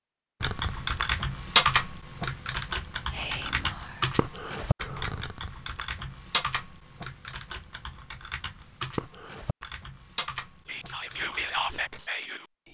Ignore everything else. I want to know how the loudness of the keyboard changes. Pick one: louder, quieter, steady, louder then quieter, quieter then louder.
quieter.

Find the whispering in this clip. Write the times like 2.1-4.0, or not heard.
3.1-4.5, 10.7-12.6.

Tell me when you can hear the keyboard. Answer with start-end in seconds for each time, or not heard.
0.4-12.0.